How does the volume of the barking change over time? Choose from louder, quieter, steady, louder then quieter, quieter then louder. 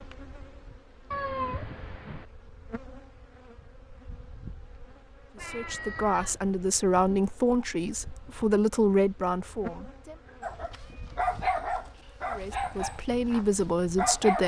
quieter.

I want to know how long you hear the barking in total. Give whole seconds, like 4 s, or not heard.
4 s.